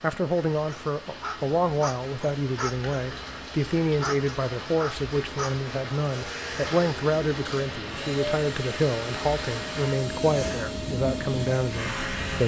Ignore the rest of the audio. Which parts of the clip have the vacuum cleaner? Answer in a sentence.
The vacuum cleaner can be heard from 6.1 to 12.4 s.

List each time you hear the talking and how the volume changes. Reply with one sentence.
You can hear the talking from 0.0 to 12.4 s, at a steady volume.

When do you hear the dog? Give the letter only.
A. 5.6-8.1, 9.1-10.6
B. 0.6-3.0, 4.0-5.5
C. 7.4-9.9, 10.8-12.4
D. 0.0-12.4
B.